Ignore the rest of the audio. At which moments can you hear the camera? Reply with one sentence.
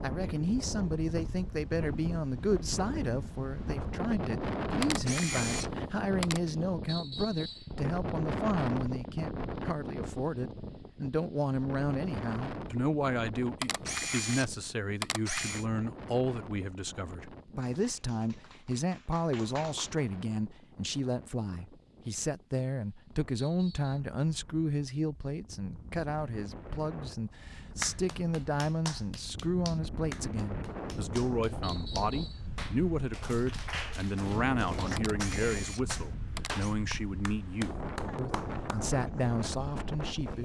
You can hear the camera from 4.8 to 6.5 s, from 13.6 to 15.7 s and from 35.0 to 36.8 s.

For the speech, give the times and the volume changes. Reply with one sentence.
The speech can be heard from 0.0 to 40.4 s, at a steady volume.